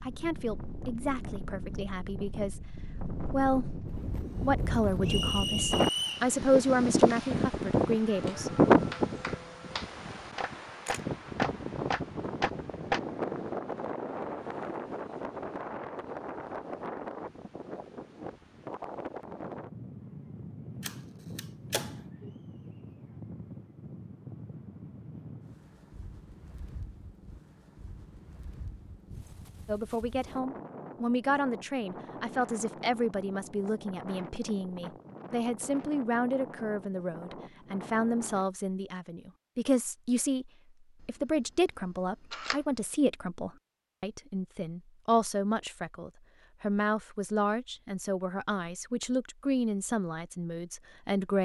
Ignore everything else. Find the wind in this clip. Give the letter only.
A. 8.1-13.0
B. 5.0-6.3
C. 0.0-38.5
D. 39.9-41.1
C.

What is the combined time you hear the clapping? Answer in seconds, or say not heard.
5 s.